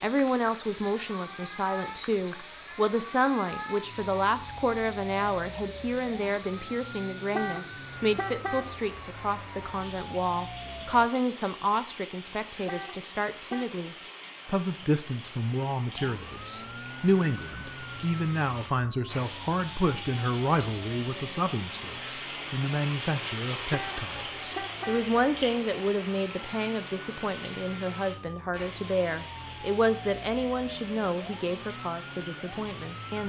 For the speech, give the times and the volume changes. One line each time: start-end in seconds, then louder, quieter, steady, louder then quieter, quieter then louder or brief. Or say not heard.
0.0-33.2 steady.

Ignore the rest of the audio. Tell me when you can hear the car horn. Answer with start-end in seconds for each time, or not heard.
7.3-8.8, 12.7-13.7, 23.7-25.1.